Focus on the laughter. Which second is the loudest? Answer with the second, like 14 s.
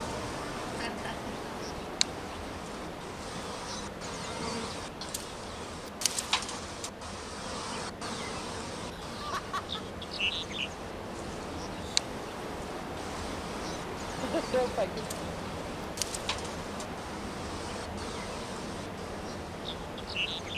15 s.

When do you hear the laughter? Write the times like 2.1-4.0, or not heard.
0.8-1.3, 8.9-9.8, 14.1-15.1.